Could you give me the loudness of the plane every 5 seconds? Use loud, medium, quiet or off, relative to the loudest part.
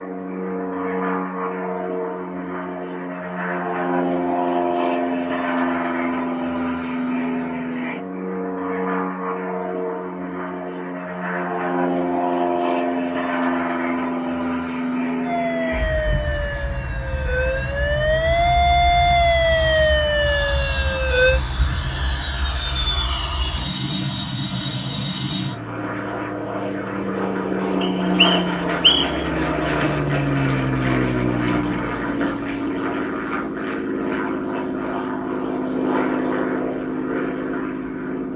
loud, loud, loud, medium, loud, loud, loud, loud.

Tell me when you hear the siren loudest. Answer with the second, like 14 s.
19 s.